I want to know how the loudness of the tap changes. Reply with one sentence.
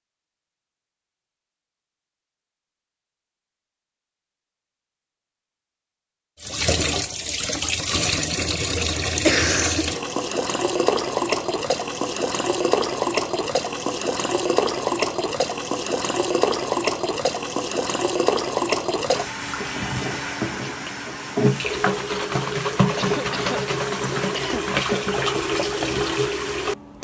The loudness of the tap stays about the same.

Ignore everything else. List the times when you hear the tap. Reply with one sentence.
You can hear the tap from 6.4 to 26.9 s.